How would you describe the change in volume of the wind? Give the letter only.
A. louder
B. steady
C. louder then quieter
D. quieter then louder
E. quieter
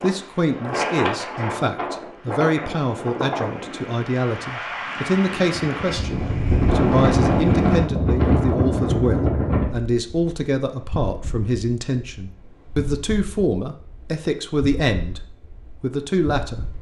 C.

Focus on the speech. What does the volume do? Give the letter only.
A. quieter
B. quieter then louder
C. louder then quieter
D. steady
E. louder
D.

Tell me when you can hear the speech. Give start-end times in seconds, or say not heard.
0.0-16.6.